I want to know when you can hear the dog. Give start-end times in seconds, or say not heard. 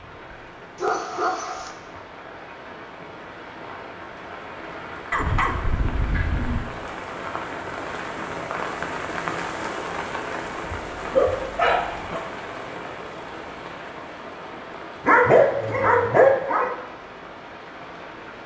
0.8-1.8, 5.1-6.7, 10.7-12.2, 15.1-16.7.